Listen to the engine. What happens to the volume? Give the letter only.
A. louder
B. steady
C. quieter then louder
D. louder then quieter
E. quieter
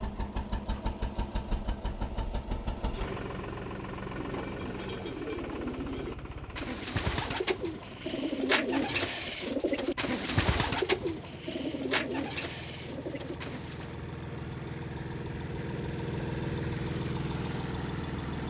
C.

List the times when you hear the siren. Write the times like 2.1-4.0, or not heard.
not heard.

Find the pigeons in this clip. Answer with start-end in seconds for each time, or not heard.
4.2-14.0.